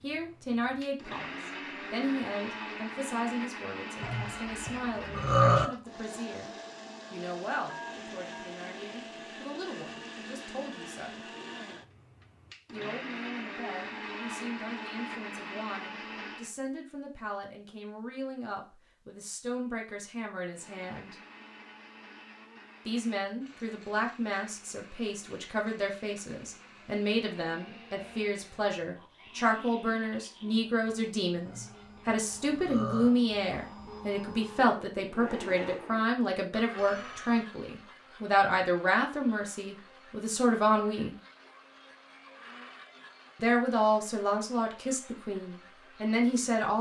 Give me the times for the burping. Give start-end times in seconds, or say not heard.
4.0-5.7, 31.4-33.1.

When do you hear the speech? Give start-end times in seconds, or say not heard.
0.0-6.5, 7.1-11.3, 12.7-21.1, 22.9-41.1, 43.4-46.7.